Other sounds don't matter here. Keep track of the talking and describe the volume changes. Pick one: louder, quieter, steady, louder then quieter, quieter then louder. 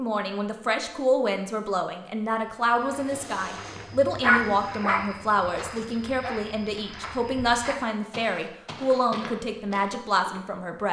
steady.